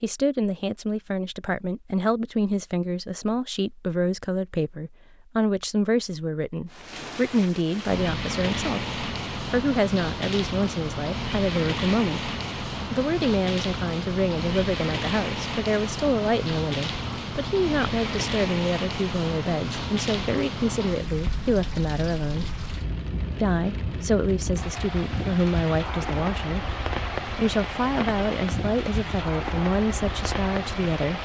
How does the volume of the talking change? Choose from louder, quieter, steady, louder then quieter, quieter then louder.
steady.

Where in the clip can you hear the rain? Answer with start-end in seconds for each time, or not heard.
6.7-31.2.